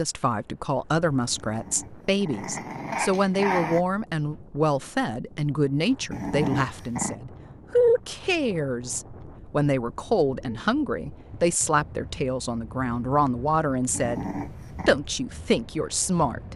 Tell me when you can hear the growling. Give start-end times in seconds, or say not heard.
1.4-3.9, 6.1-7.2, 13.9-15.0.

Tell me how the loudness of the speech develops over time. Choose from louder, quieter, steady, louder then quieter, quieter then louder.
steady.